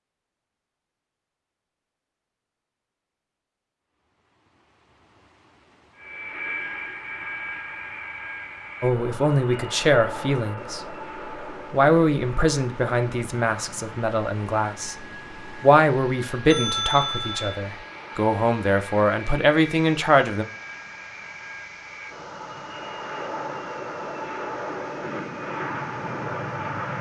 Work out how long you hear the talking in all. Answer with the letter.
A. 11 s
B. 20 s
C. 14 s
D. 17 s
A.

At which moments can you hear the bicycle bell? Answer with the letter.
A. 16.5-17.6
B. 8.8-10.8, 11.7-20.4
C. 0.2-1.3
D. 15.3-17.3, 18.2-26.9
A.